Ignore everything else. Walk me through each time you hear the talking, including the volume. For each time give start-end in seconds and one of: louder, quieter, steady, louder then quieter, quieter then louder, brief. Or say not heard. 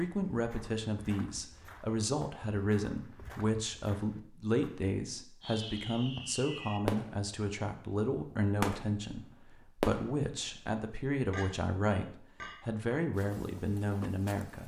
0.0-14.6 steady.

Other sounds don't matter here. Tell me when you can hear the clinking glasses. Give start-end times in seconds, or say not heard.
11.3-12.6.